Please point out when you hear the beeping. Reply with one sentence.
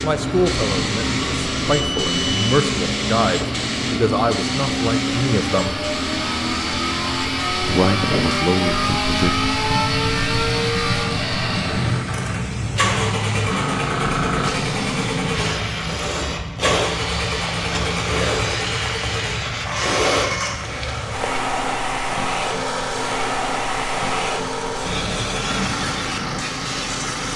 You can hear the beeping from 1.7 to 2.7 s.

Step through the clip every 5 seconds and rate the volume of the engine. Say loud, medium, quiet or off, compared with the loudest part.
medium, loud, loud, medium, medium, medium.